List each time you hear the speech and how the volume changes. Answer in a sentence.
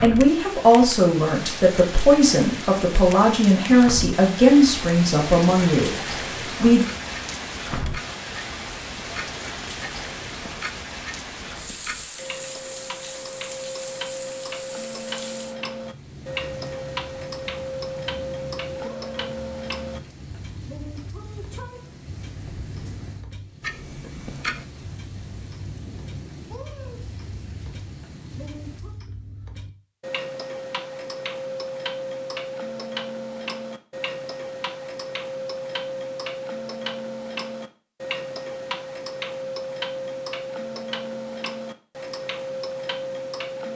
The speech can be heard from 0.0 to 6.8 s, at a steady volume.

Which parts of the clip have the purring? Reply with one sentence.
You can't hear the purring here.